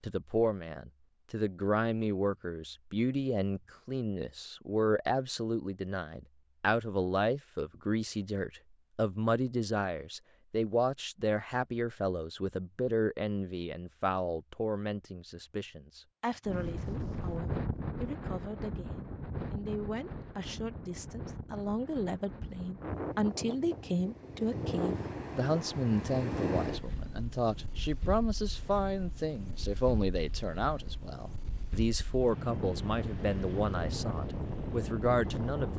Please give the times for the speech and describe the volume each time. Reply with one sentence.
The speech can be heard from 0.0 to 35.7 s, getting quieter then louder.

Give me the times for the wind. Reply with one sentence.
You can hear the wind from 16.4 to 35.7 s.